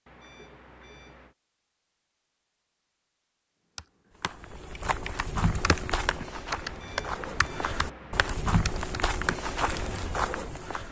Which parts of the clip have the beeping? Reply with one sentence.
The beeping can be heard from 0.1 to 1.4 s and from 6.7 to 8.3 s.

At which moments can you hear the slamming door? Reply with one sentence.
The slamming door can't be heard in this clip.